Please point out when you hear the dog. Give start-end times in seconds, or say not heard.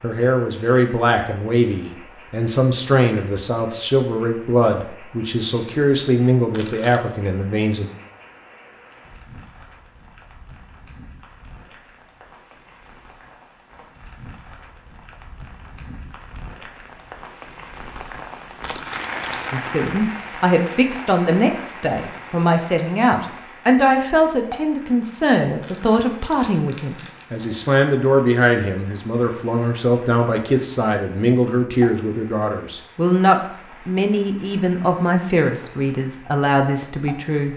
not heard.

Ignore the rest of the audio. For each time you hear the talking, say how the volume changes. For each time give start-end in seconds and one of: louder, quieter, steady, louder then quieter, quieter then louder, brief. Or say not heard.
0.0-7.8 steady
19.5-37.5 steady.